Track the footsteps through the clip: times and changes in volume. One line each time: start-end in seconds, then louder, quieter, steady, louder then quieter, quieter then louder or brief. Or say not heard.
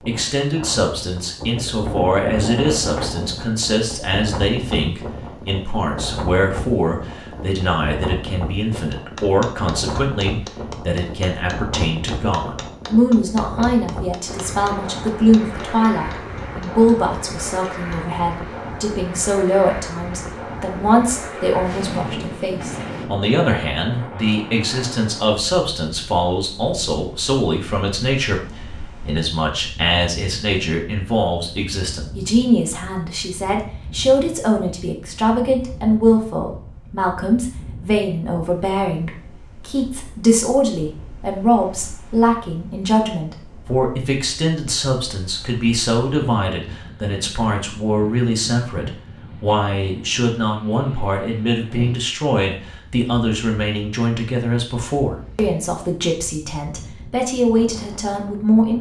not heard.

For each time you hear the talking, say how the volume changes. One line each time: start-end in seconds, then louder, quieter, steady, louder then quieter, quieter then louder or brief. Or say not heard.
0.0-58.7 steady.